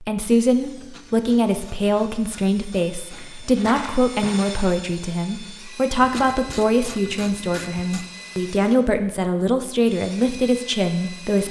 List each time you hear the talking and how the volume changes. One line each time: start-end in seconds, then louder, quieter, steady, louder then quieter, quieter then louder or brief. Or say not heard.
0.0-11.4 steady.